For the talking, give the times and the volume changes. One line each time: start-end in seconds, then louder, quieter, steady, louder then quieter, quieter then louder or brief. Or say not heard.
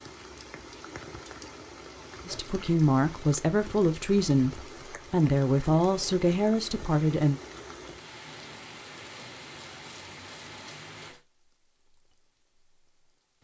2.2-7.4 steady.